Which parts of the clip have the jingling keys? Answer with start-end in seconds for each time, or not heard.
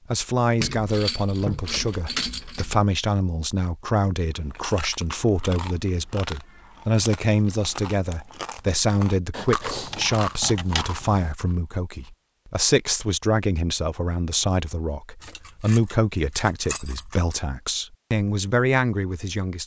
0.6-2.9, 9.3-11.3, 15.2-17.4.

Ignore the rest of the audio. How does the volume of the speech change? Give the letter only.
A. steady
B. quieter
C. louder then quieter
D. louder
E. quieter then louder
A.